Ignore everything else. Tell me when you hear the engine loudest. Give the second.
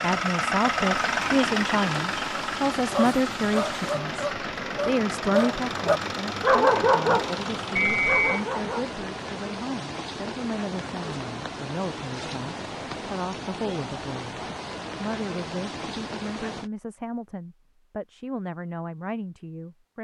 1 s.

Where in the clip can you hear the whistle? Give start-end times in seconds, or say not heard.
7.8-8.3.